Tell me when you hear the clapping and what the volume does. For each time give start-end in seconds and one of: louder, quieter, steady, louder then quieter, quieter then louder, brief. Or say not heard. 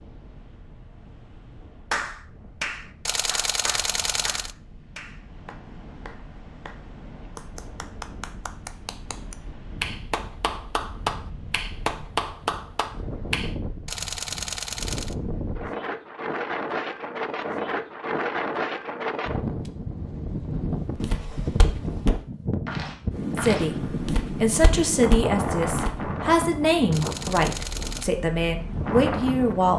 1.9-13.6 quieter then louder.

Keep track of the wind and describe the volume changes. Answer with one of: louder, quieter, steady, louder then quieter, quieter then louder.
louder.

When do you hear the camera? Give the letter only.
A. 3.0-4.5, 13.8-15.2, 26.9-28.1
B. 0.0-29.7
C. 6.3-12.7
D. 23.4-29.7
A.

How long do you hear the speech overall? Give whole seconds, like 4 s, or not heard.
6 s.